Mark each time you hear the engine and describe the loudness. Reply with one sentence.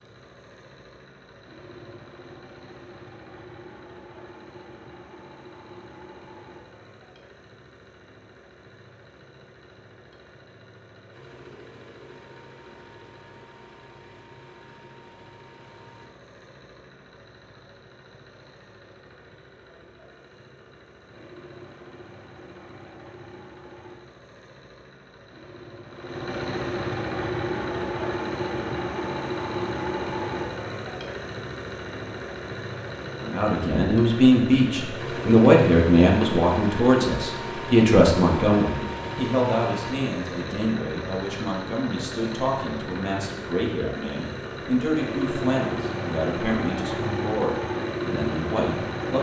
You can hear the engine from 0.0 to 49.1 s, getting louder.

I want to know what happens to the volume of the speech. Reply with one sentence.
The loudness of the speech goes down.